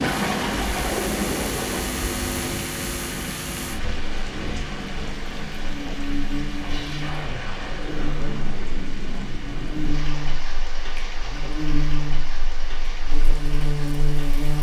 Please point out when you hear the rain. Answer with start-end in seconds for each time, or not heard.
0.0-14.5.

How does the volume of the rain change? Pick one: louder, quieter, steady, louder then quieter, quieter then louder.
quieter.